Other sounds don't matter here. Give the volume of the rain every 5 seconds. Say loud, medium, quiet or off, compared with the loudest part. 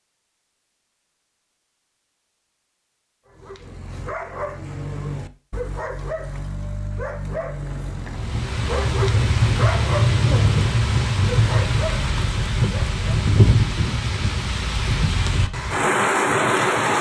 off, loud, loud, loud.